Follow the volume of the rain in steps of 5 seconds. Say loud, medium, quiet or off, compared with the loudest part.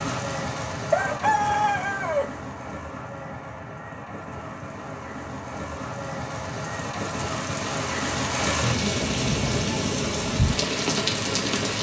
medium, loud, loud.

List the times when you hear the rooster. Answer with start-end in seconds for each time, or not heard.
0.9-2.3.